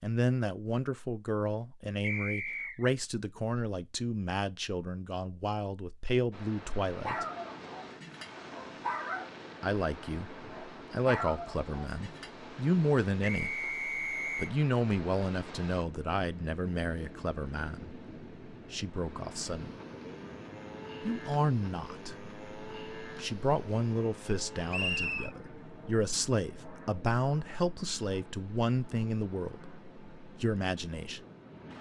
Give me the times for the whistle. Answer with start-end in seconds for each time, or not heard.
2.0-2.9, 13.2-14.5, 24.7-25.3.